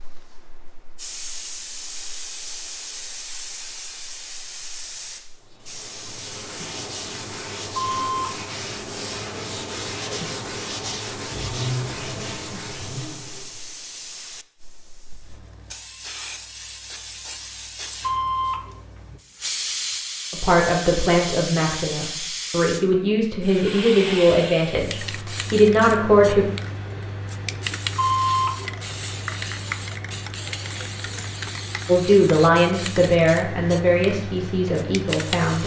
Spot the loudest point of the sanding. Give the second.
12 s.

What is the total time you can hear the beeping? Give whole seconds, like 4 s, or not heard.
2 s.